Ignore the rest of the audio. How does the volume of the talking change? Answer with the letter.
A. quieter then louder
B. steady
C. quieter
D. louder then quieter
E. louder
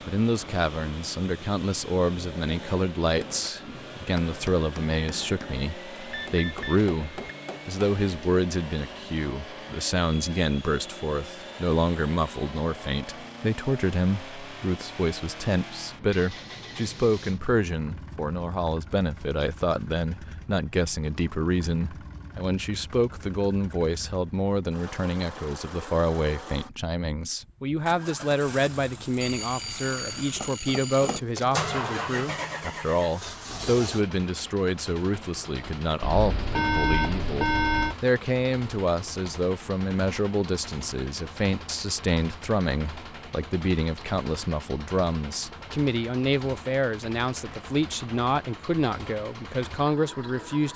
B.